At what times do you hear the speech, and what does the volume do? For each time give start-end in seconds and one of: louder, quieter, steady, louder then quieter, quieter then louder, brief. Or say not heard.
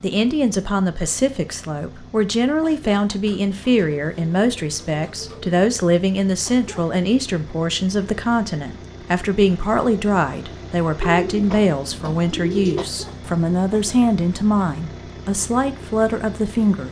0.0-16.8 steady.